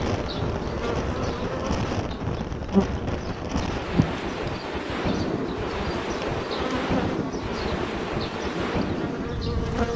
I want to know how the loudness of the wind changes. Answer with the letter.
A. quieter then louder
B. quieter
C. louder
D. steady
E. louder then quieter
D.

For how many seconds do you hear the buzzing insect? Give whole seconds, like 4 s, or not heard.
10 s.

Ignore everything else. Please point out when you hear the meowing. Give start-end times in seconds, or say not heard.
not heard.